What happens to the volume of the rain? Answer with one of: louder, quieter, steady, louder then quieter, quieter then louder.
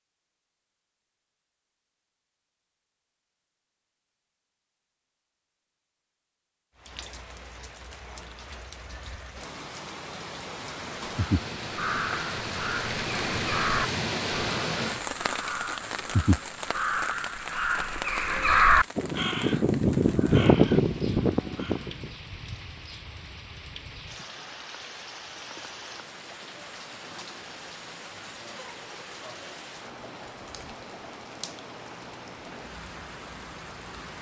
louder then quieter.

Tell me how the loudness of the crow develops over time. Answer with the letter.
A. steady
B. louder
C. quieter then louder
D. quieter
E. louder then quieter
B.